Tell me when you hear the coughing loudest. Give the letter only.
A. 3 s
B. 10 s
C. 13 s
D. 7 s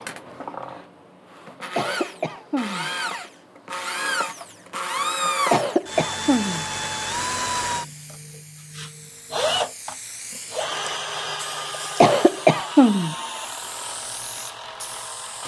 C.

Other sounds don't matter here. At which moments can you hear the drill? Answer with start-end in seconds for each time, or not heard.
0.0-15.4.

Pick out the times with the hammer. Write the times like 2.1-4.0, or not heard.
not heard.